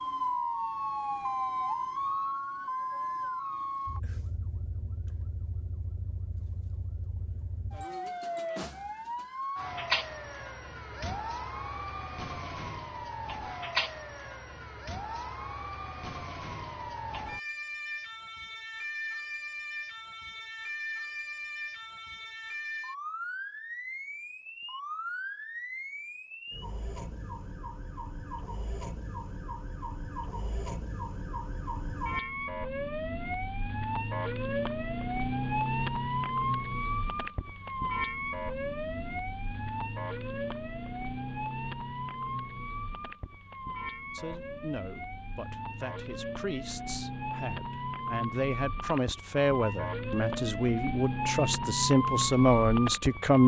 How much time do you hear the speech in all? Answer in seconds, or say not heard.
9 s.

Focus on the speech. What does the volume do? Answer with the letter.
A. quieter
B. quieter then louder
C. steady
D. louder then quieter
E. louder
E.